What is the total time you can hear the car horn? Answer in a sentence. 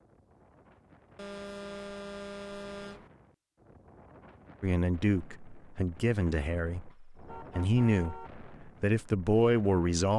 The car horn can be heard for 3 seconds in total.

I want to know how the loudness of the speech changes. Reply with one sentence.
The loudness of the speech goes up.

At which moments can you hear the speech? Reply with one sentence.
The speech can be heard from 4.6 to 10.1 s.